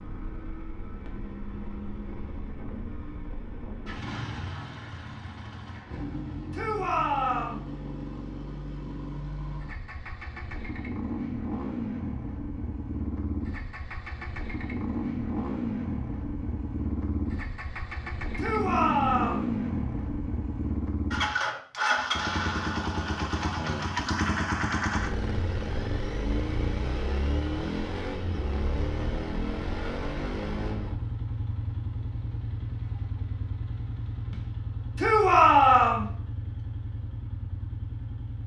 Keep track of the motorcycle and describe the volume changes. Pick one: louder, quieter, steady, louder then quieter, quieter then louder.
louder then quieter.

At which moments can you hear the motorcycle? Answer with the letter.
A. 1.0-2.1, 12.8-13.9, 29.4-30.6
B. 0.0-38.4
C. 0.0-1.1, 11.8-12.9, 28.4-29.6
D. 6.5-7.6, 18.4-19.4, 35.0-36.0
B.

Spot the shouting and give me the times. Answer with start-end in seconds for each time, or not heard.
6.5-7.6, 18.4-19.4, 35.0-36.0.